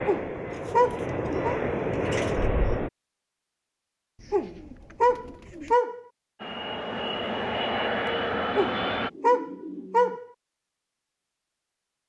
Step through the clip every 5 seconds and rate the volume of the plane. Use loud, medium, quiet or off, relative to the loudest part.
loud, loud, off.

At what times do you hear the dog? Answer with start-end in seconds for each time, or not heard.
0.1-1.6, 4.3-6.0, 8.6-10.2.